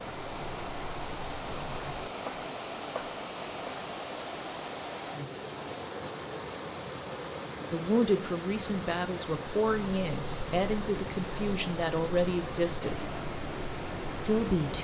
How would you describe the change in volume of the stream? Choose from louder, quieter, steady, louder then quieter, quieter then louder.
steady.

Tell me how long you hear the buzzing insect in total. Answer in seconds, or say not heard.
7 s.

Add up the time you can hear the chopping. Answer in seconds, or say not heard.
2 s.